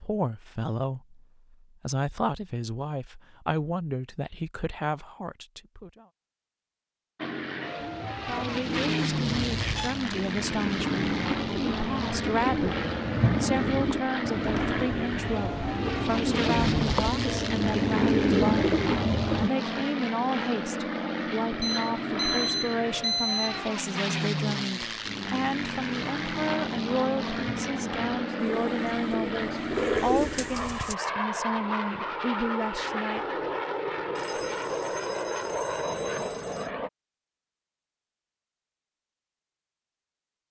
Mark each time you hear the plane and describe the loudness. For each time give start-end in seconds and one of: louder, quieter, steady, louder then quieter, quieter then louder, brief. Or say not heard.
7.2-36.9 steady.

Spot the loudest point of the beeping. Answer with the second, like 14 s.
23 s.